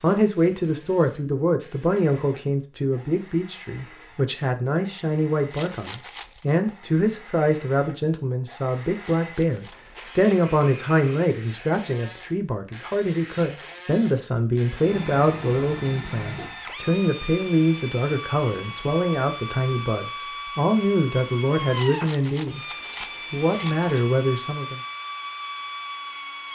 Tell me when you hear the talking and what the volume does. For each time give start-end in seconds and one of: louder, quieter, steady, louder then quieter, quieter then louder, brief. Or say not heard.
0.0-22.6 steady
23.2-24.8 brief.